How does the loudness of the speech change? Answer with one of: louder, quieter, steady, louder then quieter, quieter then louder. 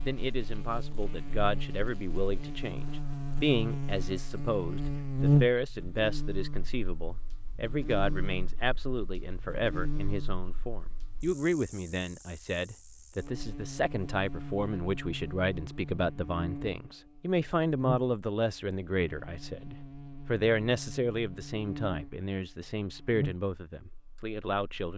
steady.